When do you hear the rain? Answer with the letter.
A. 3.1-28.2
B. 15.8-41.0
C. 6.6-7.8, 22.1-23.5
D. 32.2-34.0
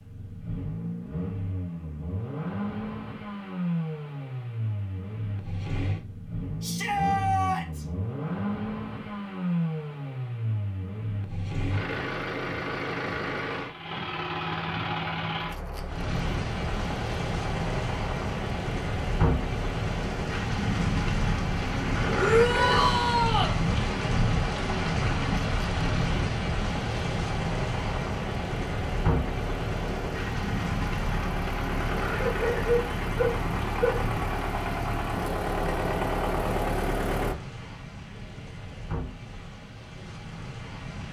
B.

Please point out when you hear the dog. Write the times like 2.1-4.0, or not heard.
32.2-34.0.